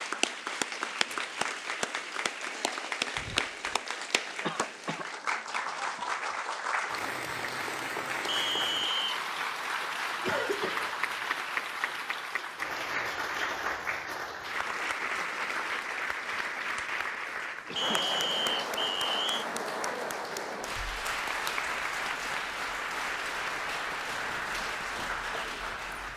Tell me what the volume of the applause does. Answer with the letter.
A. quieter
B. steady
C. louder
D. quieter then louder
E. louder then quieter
B.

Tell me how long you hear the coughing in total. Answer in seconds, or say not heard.
2 s.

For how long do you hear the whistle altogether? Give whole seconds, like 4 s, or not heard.
3 s.